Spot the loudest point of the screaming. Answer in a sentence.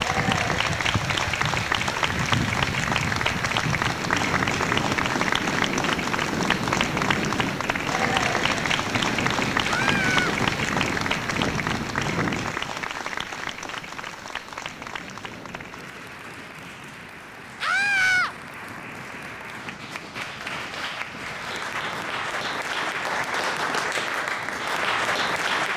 The loudest moment of the screaming is at 18 seconds.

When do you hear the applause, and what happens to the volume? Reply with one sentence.
The applause can be heard from 0.0 to 25.7 s, getting quieter then louder.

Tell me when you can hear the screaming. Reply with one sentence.
The screaming can be heard from 9.6 to 10.3 s and from 17.6 to 18.4 s.